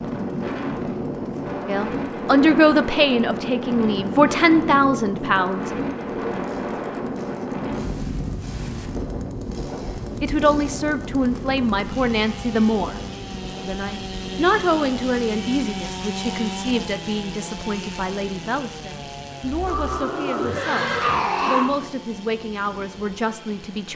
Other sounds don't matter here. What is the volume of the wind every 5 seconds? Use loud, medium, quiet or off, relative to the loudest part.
loud, loud, medium, quiet, quiet.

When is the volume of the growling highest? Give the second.
21 s.